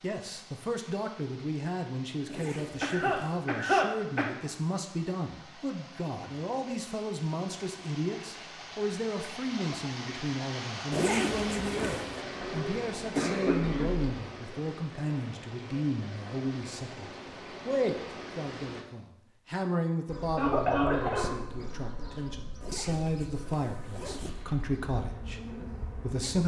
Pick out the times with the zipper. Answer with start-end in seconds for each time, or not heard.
2.2-3.4, 10.9-12.1, 22.6-24.4.